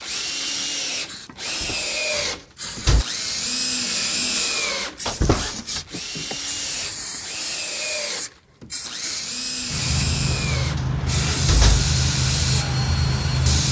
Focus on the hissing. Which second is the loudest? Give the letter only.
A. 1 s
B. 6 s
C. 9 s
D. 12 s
D.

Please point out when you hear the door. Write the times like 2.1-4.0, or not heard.
1.4-3.0, 5.0-5.8, 10.2-11.9.